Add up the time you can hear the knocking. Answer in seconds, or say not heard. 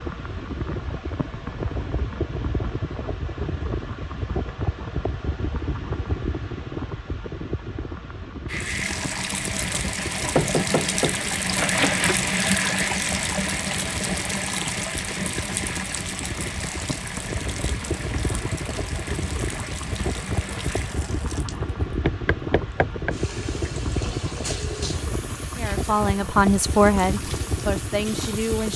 3 s.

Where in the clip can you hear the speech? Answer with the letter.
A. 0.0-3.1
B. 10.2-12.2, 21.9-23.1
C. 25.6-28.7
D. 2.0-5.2
C.